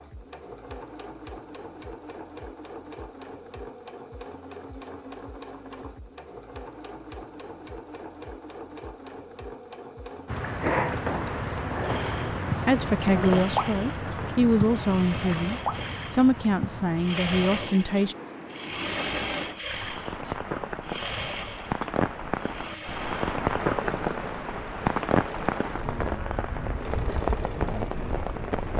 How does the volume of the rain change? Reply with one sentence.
The volume of the rain goes down, then up.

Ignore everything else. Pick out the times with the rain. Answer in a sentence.
The rain can be heard from 10.2 to 28.7 s.